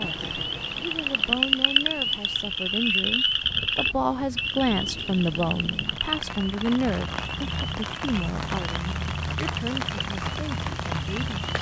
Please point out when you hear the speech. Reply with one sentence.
You can hear the speech from 0.0 to 11.4 s.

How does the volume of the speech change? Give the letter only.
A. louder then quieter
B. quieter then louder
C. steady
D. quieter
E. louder
A.